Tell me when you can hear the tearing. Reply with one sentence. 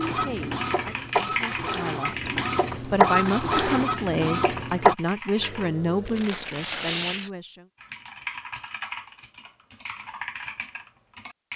You can hear the tearing from 6.0 to 7.3 s.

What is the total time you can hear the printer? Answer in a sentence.
You can hear the printer for 5 seconds altogether.